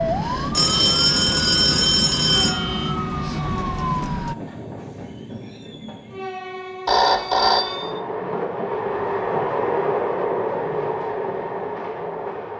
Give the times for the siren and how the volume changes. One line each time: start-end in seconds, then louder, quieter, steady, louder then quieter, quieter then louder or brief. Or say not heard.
0.0-4.3 steady.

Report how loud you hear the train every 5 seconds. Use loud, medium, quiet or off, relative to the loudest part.
medium, loud, loud.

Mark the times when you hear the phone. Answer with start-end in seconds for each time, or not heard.
0.5-3.0, 6.8-8.0.